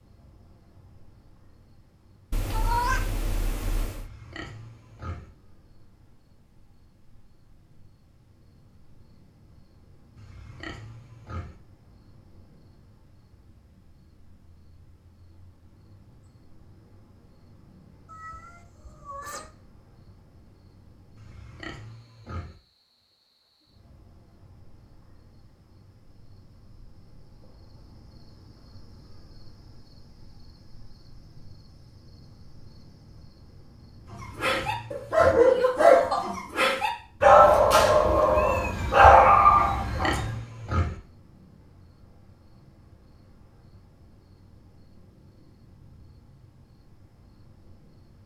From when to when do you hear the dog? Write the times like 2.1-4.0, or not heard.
34.2-40.3.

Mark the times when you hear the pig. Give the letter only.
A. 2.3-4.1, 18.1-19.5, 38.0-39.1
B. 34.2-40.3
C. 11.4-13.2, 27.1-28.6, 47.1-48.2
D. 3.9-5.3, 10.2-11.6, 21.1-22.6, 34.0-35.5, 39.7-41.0
D.